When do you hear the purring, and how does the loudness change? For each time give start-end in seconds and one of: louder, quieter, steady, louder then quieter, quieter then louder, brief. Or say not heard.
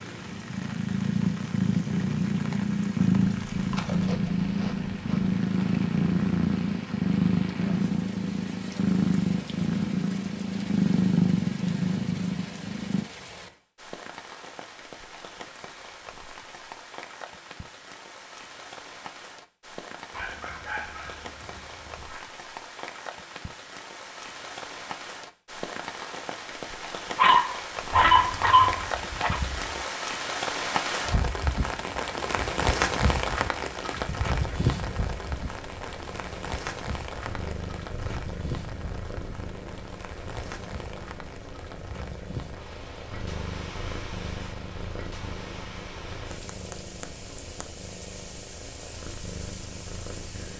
0.0-13.1 steady
34.3-50.5 steady.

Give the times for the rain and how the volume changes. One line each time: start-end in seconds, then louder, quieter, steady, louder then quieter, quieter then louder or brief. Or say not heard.
0.0-50.5 louder then quieter.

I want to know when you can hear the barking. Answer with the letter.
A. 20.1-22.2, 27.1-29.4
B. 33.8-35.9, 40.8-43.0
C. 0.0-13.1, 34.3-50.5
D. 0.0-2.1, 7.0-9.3
A.